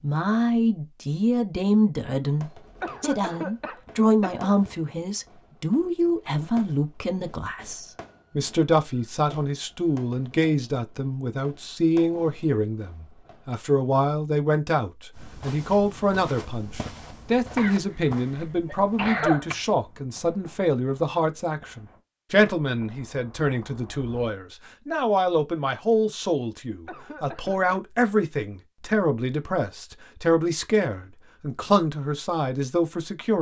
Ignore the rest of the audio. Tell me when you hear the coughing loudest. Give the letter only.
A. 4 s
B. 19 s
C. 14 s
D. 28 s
B.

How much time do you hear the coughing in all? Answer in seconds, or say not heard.
5 s.